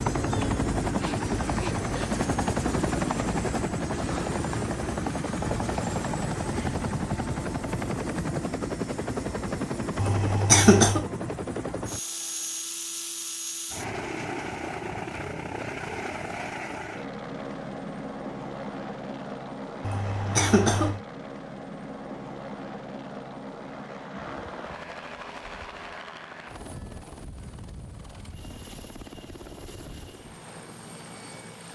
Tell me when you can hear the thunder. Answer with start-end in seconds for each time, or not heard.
not heard.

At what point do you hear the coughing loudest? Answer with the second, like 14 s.
11 s.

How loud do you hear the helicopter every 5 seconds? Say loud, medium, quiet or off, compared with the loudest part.
loud, loud, medium, medium, medium, quiet, quiet.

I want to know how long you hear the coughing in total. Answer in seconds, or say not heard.
2 s.